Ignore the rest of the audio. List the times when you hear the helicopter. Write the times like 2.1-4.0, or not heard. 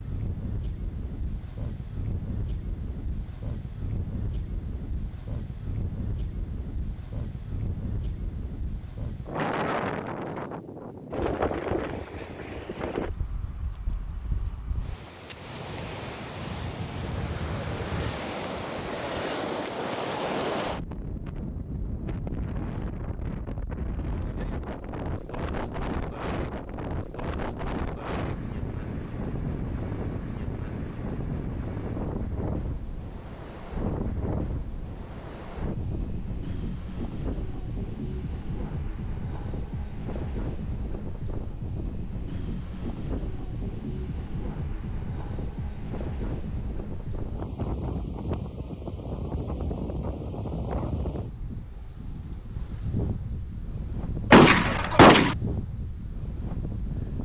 not heard.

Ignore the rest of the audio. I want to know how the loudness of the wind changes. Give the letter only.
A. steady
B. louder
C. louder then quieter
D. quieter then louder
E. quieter
A.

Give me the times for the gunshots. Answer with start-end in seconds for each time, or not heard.
54.3-55.4.